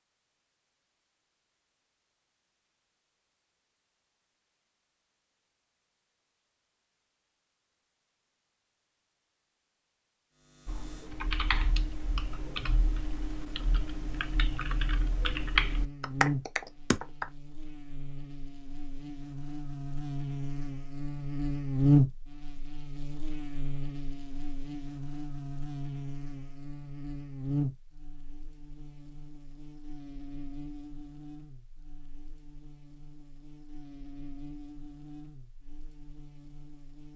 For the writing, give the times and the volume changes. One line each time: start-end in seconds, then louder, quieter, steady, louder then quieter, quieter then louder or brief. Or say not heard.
not heard.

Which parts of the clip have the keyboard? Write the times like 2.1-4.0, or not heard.
10.7-17.2.